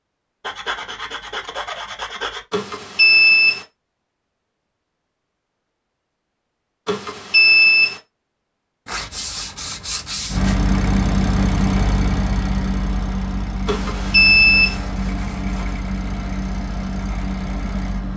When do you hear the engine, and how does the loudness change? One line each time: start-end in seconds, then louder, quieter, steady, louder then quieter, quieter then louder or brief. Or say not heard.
10.2-18.1 quieter.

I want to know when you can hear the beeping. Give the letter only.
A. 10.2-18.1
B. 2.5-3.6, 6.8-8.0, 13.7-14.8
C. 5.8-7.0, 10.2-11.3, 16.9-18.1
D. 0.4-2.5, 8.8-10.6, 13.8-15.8
B.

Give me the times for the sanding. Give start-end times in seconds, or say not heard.
0.4-2.5, 8.8-10.6, 13.8-15.8.